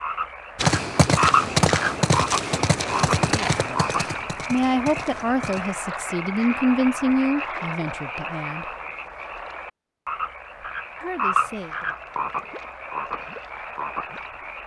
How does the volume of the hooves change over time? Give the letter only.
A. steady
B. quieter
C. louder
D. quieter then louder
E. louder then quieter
B.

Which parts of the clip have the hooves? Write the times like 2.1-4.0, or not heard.
0.6-5.8.